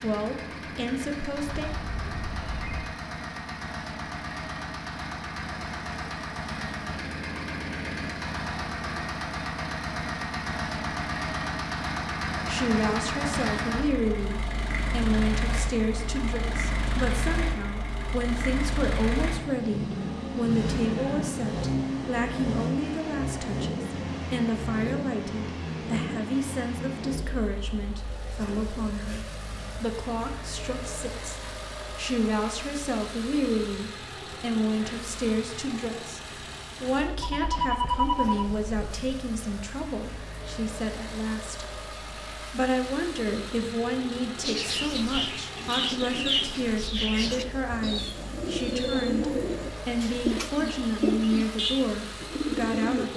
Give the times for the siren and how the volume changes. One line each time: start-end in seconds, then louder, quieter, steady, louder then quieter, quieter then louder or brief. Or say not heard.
not heard.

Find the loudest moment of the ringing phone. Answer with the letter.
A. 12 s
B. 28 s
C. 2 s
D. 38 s
D.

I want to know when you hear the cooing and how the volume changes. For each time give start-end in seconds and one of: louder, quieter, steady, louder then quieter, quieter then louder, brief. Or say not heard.
44.4-53.0 steady.